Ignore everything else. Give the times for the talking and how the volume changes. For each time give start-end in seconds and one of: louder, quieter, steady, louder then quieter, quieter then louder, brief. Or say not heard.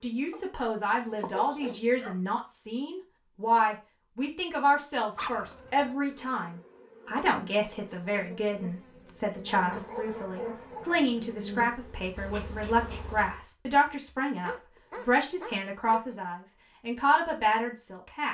0.0-18.3 steady.